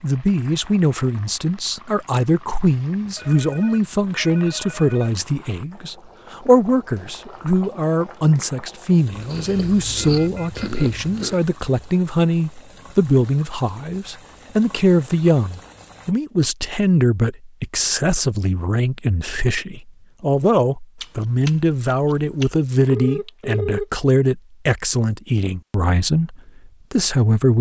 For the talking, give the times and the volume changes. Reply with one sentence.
The talking can be heard from 0.0 to 27.5 s, at a steady volume.